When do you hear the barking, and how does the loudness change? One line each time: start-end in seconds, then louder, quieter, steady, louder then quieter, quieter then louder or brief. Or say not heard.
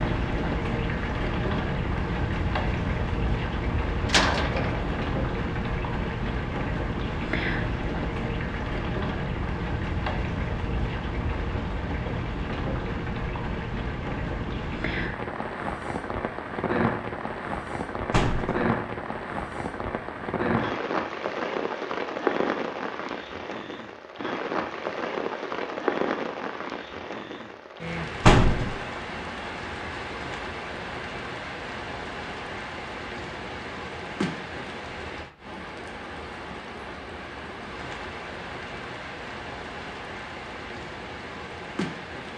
not heard.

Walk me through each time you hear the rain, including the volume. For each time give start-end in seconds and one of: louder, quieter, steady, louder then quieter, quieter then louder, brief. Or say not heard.
0.0-42.3 quieter.